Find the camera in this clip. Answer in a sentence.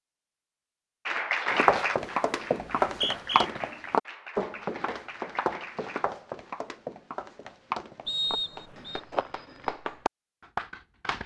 The camera can't be heard in this clip.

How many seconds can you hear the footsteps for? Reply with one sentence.
The footsteps can be heard for 8 seconds in total.